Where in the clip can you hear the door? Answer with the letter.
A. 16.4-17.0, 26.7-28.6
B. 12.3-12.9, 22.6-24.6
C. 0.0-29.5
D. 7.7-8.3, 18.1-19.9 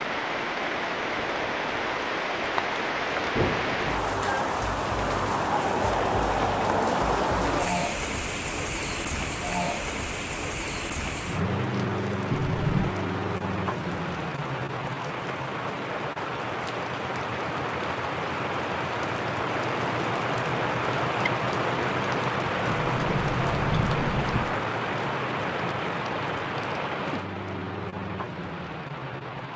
B.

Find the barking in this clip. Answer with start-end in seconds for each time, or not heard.
not heard.